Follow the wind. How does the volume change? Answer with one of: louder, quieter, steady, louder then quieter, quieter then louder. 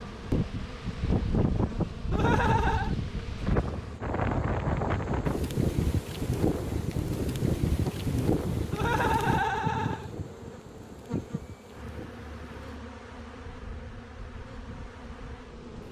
quieter.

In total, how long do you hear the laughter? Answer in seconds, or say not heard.
2 s.